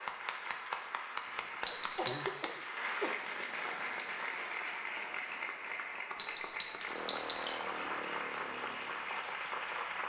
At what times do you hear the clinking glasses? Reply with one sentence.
The clinking glasses can be heard from 1.6 to 2.3 s and from 6.2 to 7.7 s.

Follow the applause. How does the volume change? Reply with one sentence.
The loudness of the applause stays about the same.